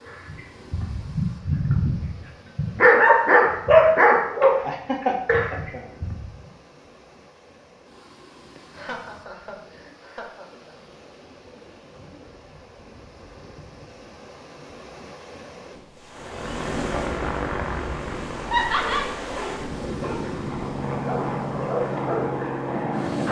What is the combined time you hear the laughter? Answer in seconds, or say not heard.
4 s.